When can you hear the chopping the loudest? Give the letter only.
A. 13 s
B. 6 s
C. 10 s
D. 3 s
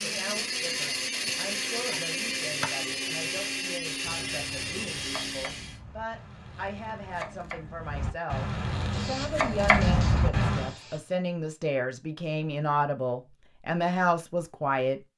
C.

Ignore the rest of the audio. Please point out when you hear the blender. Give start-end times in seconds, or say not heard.
0.0-5.8.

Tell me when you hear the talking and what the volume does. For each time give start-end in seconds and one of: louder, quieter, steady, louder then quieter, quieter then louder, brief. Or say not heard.
0.0-15.0 louder.